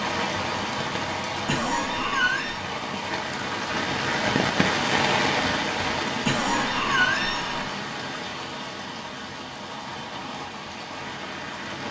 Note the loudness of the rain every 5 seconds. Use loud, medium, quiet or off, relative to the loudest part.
loud, loud, medium.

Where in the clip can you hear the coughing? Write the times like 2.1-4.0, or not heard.
1.4-2.6, 6.2-7.7.